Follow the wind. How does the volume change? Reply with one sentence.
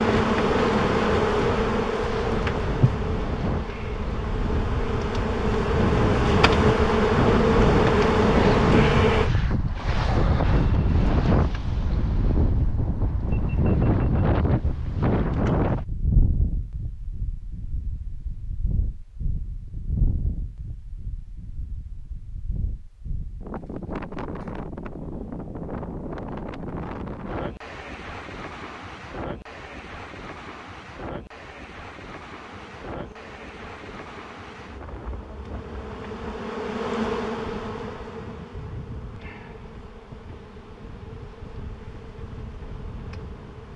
The loudness of the wind goes down.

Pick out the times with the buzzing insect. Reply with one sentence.
You can hear the buzzing insect from 0.0 to 9.3 s and from 32.4 to 43.7 s.